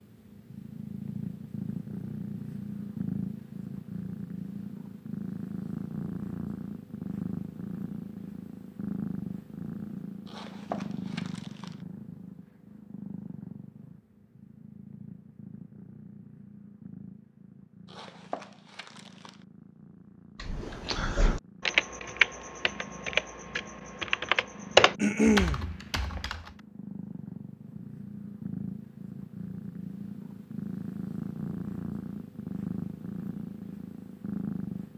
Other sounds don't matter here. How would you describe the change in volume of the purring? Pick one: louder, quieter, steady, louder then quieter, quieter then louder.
quieter then louder.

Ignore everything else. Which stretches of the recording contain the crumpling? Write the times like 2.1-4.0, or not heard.
10.2-11.8, 17.9-19.4.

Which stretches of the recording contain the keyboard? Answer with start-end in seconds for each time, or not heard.
20.4-26.6.